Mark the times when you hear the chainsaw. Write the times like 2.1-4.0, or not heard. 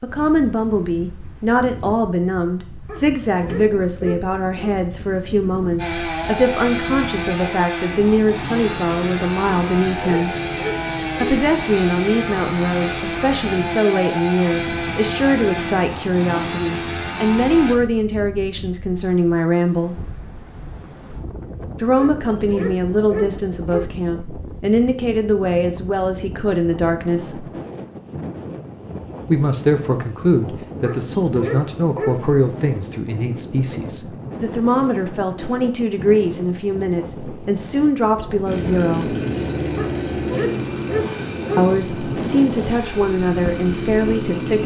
5.8-17.8, 38.5-44.6.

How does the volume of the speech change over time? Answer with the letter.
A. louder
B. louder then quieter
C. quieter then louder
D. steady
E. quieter
D.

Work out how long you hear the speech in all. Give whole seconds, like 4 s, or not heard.
38 s.